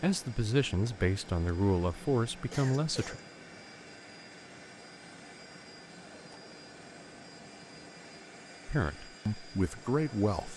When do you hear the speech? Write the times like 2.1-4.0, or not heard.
0.0-3.2, 8.7-10.5.